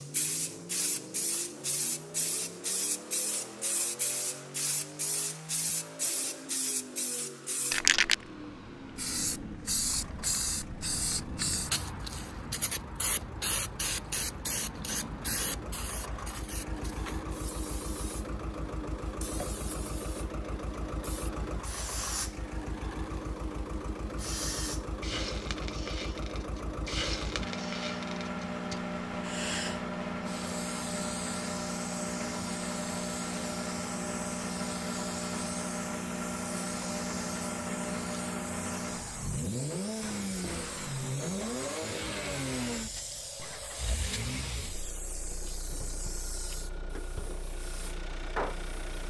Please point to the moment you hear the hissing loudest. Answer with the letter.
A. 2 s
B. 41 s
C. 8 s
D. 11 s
C.